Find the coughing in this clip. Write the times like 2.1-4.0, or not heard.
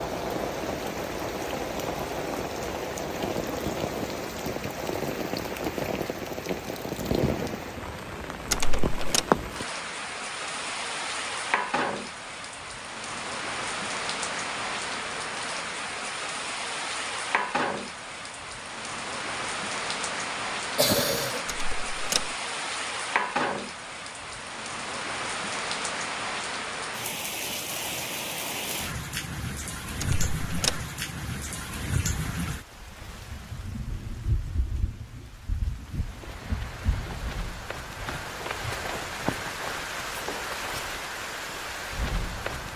20.8-21.4.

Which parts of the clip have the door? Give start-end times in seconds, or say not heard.
8.5-9.2, 21.4-22.3, 30.0-30.8.